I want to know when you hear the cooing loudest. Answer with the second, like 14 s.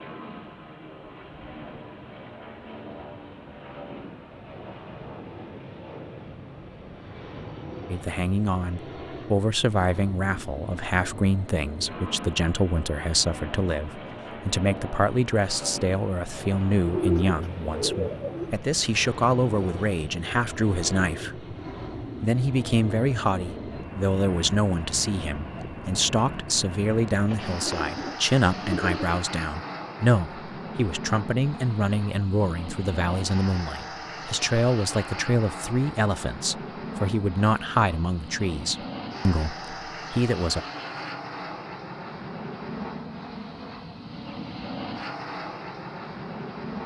17 s.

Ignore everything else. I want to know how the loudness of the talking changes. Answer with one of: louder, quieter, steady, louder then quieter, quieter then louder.
steady.